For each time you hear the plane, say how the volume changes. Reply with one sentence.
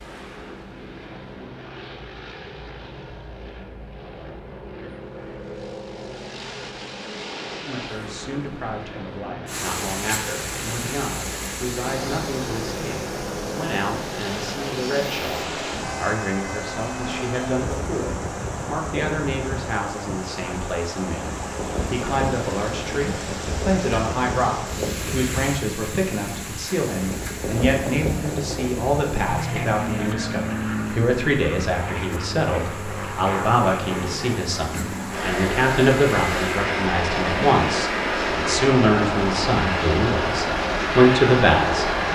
The plane can be heard from 0.0 to 42.1 s, getting louder.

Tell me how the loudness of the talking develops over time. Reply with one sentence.
The loudness of the talking goes up.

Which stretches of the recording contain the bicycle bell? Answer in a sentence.
You can't hear the bicycle bell here.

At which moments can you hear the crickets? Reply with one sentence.
The crickets can't be heard in this clip.